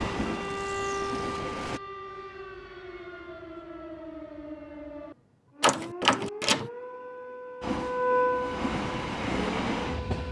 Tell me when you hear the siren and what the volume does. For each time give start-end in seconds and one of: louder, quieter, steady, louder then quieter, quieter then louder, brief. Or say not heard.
0.0-10.2 quieter then louder.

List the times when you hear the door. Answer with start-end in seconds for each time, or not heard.
5.6-6.7.